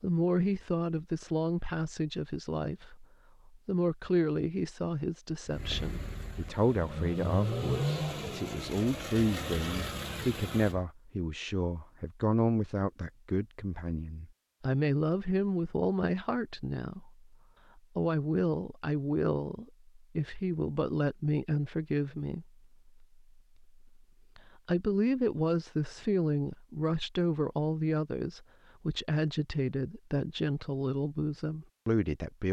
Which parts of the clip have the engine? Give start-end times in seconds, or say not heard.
5.5-10.8.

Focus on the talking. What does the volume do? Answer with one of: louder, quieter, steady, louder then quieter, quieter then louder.
steady.